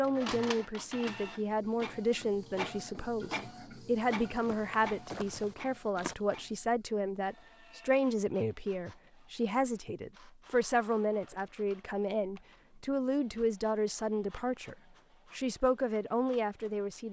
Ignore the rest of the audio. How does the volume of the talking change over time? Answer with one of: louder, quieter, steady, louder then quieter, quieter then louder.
steady.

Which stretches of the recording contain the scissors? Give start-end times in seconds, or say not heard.
not heard.